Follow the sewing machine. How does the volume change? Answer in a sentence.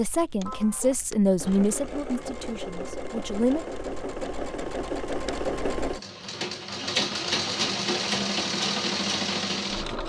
The volume of the sewing machine goes up.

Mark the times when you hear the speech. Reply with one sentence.
The speech can be heard from 0.0 to 3.6 s.